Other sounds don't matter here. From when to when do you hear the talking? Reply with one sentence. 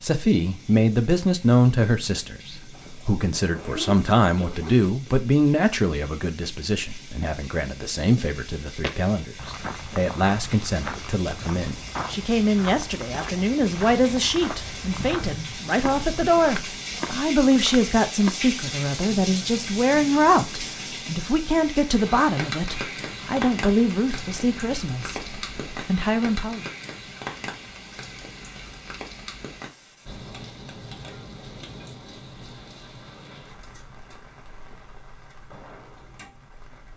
You can hear the talking from 0.0 to 26.7 s.